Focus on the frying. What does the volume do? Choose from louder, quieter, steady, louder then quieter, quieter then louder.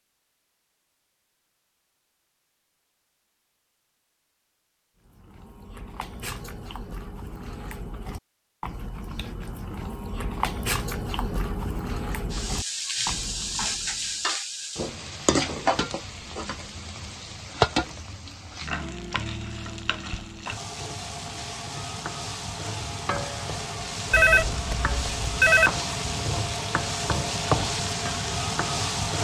quieter then louder.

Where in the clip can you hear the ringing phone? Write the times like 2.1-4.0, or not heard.
24.1-25.8.